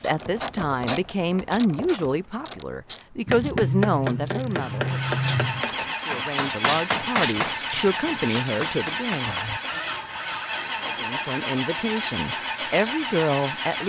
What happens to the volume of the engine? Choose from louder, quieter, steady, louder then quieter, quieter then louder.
steady.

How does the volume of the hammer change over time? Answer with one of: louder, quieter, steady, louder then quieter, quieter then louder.
quieter.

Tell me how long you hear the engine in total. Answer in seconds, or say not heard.
9 s.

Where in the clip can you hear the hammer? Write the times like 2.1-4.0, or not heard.
3.2-12.9.